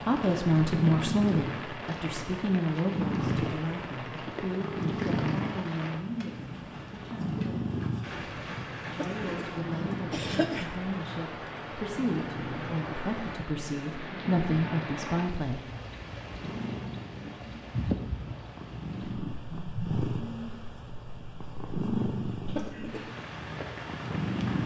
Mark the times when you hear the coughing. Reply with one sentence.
You can hear the coughing from 8.9 to 9.5 s, from 10.1 to 10.7 s and from 22.4 to 23.1 s.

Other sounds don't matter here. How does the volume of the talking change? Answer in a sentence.
The volume of the talking goes down, then up.